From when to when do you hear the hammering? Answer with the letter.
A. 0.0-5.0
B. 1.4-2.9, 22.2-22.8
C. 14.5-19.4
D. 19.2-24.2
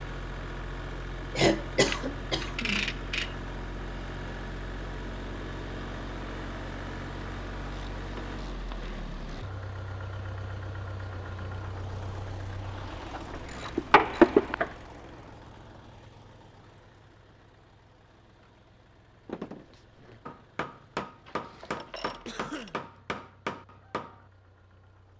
D.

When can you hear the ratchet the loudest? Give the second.
14 s.